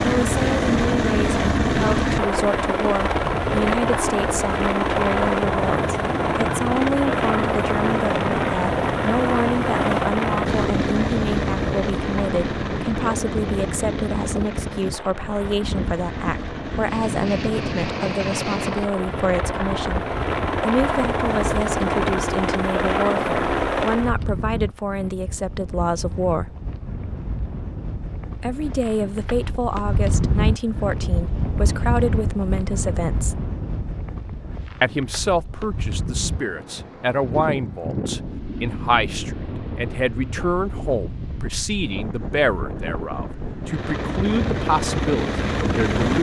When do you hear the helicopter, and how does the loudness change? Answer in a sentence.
You can hear the helicopter from 0.0 to 24.1 s, getting quieter then louder; and briefly from 43.6 to 46.1 s.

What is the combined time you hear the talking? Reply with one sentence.
The talking can be heard for 43 seconds in total.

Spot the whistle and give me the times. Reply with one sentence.
You can't hear the whistle here.